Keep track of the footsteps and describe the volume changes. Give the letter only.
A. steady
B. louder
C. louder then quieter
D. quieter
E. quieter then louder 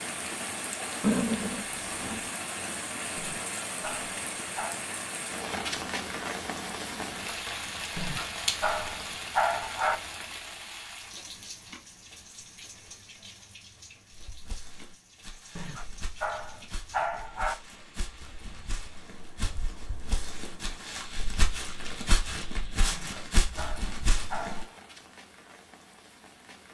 B.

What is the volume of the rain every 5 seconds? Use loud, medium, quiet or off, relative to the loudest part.
loud, loud, medium, quiet, quiet, quiet.